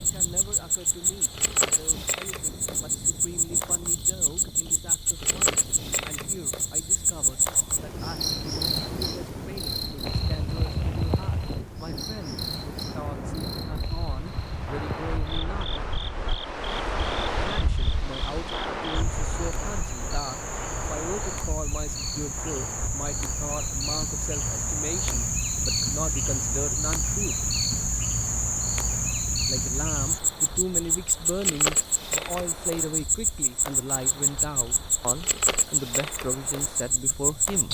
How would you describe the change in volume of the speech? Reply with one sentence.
The volume of the speech goes up.